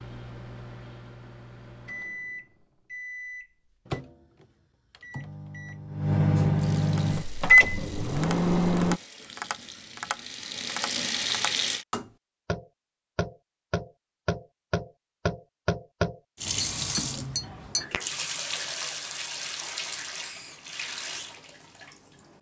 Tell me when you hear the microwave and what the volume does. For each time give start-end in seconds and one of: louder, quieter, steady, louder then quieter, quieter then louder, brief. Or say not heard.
0.0-9.0 louder.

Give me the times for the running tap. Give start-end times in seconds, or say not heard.
6.5-11.8, 16.4-22.3.